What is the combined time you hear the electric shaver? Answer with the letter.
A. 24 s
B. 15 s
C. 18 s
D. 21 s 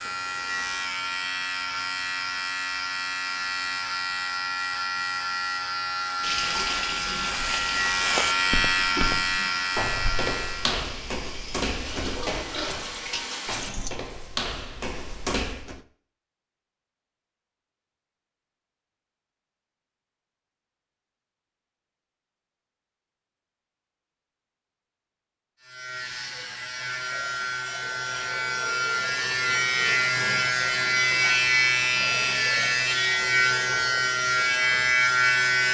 D.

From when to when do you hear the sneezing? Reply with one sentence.
You can't hear the sneezing here.